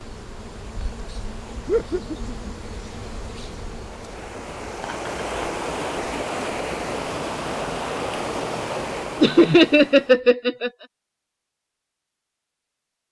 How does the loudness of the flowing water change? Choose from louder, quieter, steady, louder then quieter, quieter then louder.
louder.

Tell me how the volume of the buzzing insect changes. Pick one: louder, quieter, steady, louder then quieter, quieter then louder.
steady.